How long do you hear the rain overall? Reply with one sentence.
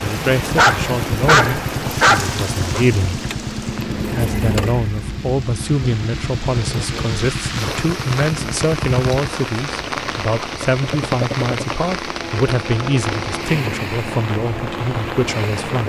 The rain can be heard for 16 seconds in total.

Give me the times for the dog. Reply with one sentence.
You can hear the dog from 0.6 to 2.9 s.